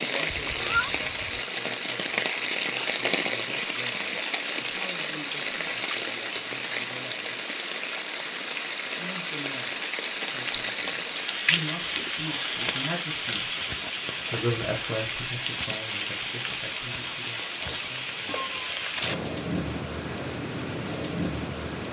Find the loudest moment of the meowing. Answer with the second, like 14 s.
1 s.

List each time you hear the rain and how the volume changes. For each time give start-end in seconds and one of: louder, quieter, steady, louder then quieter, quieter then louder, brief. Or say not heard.
0.0-21.8 steady.